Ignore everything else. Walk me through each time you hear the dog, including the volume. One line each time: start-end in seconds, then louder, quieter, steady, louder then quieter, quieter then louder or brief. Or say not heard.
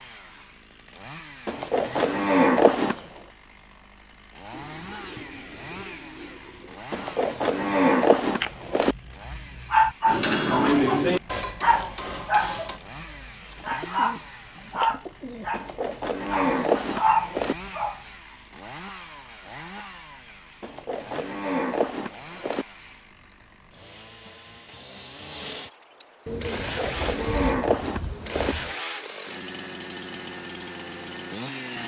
8.3-18.0 steady.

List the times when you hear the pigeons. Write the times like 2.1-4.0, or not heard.
4.5-6.8, 13.6-15.7, 26.2-28.8.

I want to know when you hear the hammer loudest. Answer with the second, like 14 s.
11 s.